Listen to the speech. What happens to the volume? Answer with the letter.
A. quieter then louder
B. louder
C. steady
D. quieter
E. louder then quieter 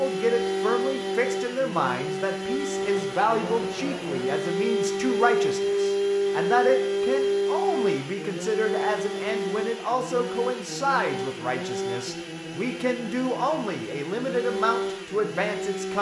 C.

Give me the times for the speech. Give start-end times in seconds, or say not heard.
0.0-15.9.